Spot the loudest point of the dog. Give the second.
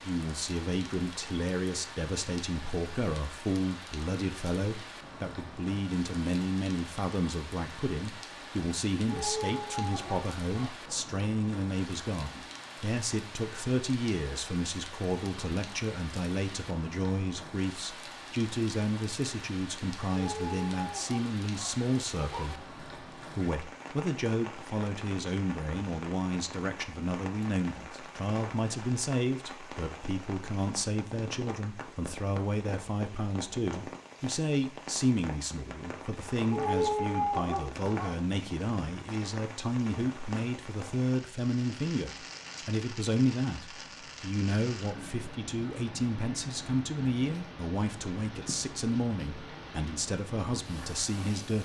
37 s.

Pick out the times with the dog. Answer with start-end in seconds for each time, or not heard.
9.1-11.0, 20.1-22.6, 36.5-38.1.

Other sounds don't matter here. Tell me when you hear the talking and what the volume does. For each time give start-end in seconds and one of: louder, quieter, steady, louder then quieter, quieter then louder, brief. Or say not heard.
0.0-51.6 steady.